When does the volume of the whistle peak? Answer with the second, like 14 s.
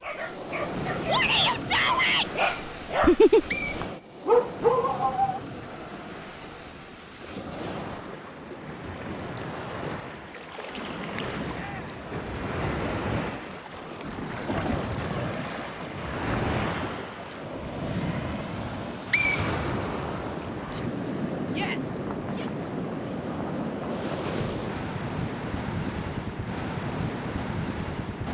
19 s.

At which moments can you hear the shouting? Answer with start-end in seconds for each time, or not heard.
1.1-2.3, 11.5-12.0, 21.5-22.5.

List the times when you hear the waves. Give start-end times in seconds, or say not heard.
0.0-28.2.